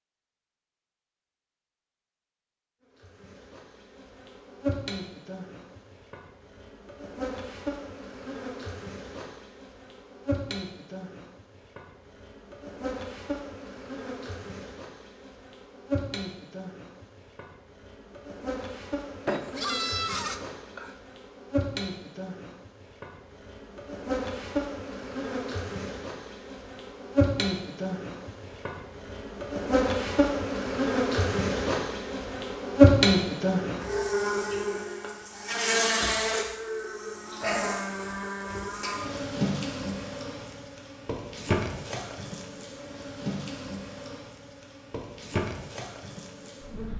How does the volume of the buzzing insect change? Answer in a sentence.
The loudness of the buzzing insect goes up, then down.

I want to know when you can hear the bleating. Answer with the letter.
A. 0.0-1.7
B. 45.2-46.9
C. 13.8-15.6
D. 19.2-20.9
D.